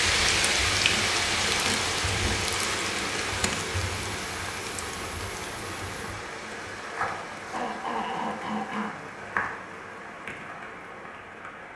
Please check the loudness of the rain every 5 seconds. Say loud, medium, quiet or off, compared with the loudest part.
loud, medium, quiet.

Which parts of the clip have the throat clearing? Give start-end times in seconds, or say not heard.
0.8-2.4, 7.0-9.1.